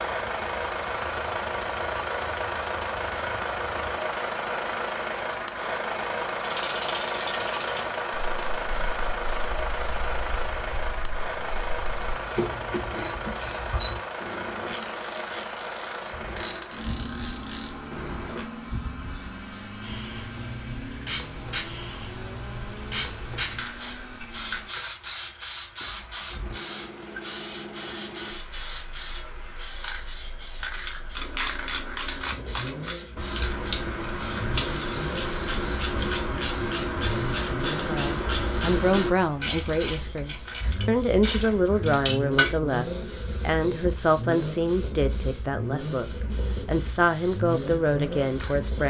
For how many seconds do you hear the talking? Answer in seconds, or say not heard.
11 s.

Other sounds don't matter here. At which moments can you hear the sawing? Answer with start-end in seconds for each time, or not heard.
not heard.